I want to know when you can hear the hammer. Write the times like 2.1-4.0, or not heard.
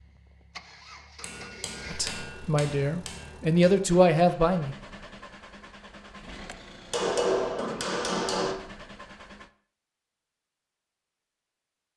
1.2-3.6, 6.9-8.6.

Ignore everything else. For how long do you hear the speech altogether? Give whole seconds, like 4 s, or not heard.
3 s.